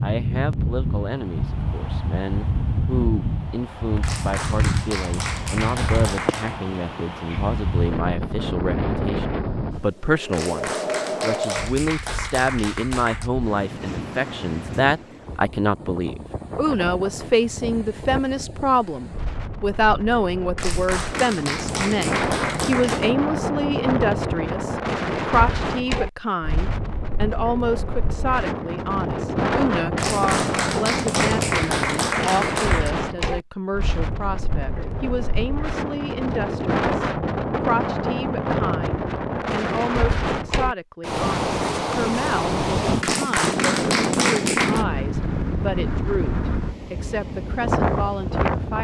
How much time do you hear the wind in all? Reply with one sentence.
You can hear the wind for 49 seconds altogether.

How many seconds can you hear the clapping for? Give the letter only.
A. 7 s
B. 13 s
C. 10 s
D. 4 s
B.